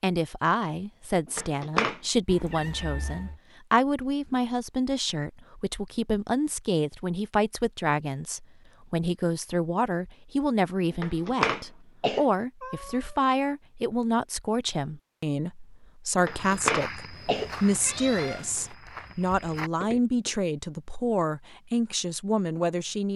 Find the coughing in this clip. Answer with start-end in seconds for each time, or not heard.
1.4-2.0, 11.0-12.2, 16.2-17.5.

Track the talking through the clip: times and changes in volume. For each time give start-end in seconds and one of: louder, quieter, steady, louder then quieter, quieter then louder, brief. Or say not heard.
0.0-23.1 steady.